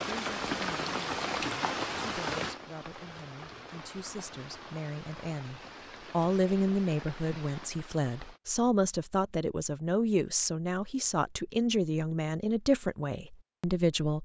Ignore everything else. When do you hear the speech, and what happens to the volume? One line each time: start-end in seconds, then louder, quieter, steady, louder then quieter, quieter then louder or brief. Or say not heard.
0.0-14.1 louder.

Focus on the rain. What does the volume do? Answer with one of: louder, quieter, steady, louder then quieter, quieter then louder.
quieter.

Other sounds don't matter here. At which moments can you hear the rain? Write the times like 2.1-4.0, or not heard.
0.0-8.4.